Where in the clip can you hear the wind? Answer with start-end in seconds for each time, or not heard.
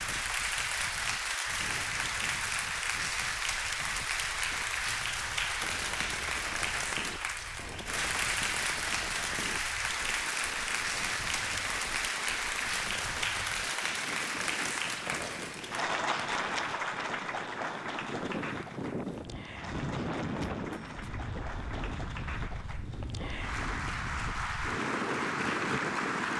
0.0-26.3.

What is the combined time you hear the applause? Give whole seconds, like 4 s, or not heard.
26 s.